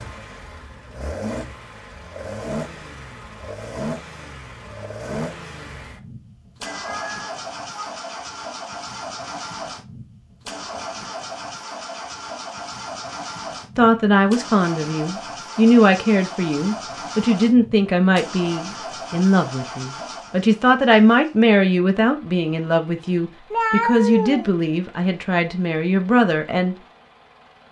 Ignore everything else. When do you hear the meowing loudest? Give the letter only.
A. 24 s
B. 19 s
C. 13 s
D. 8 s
A.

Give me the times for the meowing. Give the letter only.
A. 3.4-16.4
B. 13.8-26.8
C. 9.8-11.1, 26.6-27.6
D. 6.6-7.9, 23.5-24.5
D.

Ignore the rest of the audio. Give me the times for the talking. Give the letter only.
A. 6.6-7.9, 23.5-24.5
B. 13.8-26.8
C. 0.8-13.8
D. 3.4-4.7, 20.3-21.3
B.